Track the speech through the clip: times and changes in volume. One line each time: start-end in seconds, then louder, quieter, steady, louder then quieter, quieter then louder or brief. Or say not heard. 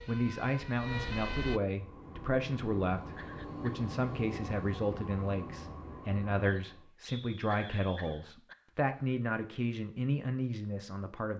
0.1-11.3 steady.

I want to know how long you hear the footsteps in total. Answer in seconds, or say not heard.
not heard.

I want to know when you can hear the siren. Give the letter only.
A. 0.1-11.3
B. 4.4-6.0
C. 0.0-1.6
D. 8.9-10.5
C.